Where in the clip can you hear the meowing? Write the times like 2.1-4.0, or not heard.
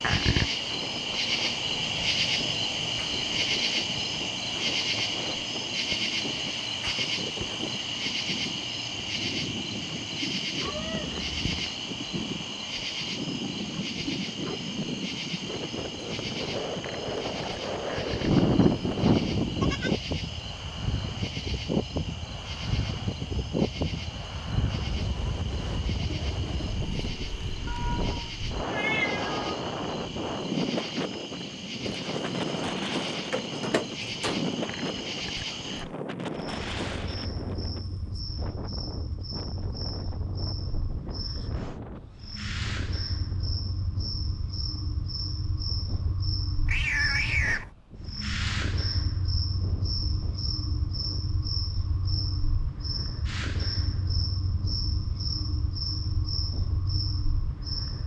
10.7-11.7, 27.6-29.6, 46.6-47.7.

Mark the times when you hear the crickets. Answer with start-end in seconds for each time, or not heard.
0.0-58.0.